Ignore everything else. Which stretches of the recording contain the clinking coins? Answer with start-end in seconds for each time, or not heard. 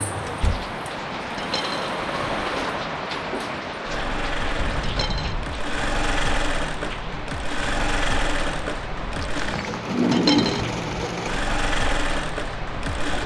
1.4-1.9, 4.8-5.3, 10.1-10.7.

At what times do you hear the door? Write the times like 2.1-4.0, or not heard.
0.2-0.7, 4.5-5.5, 9.2-9.8.